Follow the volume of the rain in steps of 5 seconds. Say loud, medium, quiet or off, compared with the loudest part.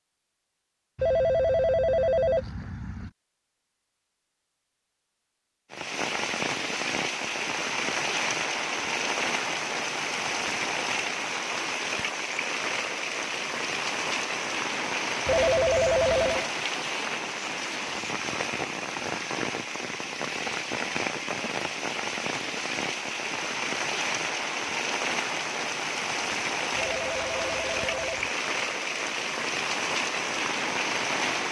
off, loud, loud, loud, loud, loud, loud.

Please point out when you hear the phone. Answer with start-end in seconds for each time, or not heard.
0.9-3.1, 15.2-16.5, 26.7-28.3.